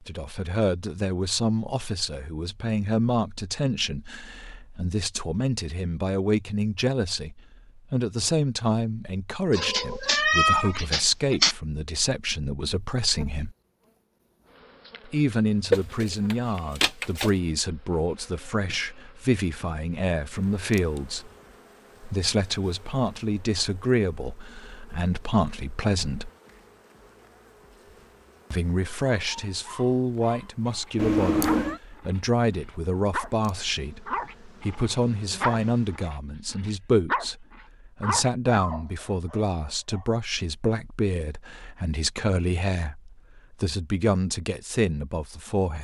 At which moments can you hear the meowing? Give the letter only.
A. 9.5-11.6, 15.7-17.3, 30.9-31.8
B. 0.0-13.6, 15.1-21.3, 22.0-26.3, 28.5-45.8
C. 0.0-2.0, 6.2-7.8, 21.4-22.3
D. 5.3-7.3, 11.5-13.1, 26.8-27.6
A.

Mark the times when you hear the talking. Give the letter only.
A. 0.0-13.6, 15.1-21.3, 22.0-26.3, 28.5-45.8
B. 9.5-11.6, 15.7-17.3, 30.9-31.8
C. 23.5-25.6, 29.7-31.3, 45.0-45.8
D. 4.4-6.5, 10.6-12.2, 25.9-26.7
A.